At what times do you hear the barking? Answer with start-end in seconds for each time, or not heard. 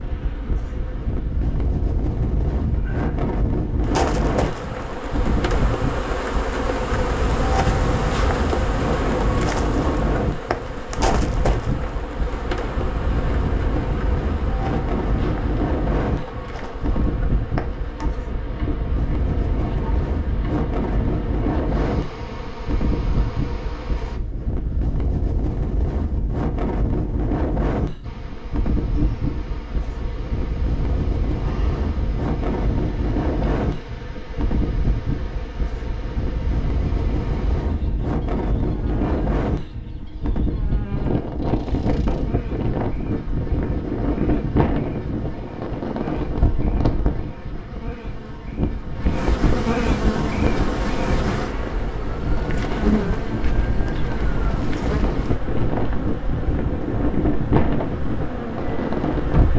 not heard.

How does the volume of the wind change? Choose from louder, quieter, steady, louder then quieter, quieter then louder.
steady.